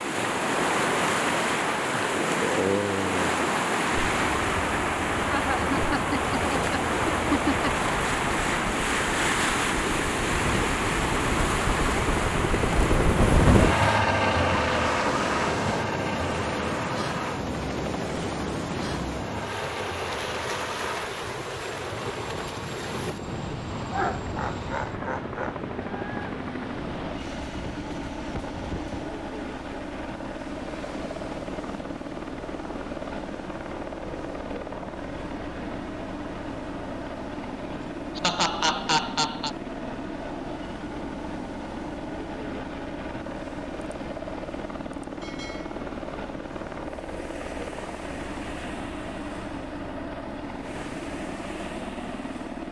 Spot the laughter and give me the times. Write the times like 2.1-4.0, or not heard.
5.3-7.7, 23.9-25.6, 37.7-39.5.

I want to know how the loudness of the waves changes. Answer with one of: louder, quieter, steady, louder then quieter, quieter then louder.
quieter.